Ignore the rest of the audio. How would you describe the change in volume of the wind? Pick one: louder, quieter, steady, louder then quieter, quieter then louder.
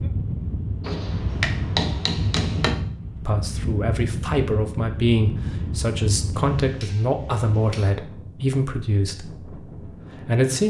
quieter.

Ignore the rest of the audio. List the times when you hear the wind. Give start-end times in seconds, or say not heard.
0.0-10.6.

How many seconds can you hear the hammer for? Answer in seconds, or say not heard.
3 s.